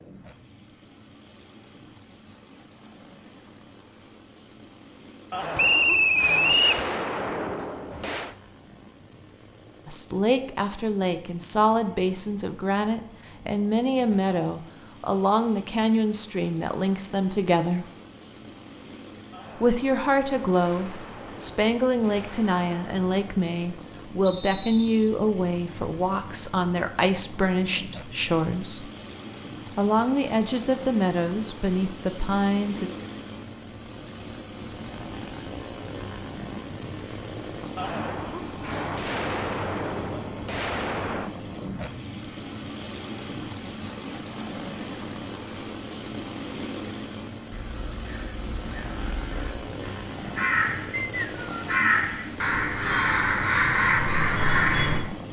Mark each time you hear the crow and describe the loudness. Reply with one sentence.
You can hear the crow from 47.5 to 55.0 s, getting louder.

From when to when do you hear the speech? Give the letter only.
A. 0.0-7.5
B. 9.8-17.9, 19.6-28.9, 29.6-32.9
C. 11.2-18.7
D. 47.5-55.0
B.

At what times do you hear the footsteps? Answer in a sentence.
You can't hear the footsteps here.